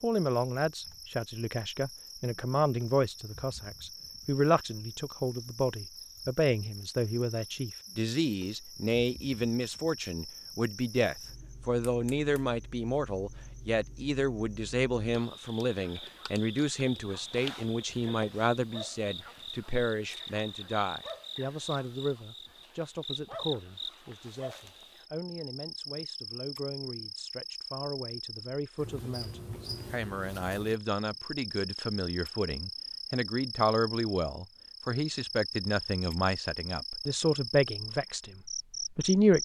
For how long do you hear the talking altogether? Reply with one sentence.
You can hear the talking for 39 seconds altogether.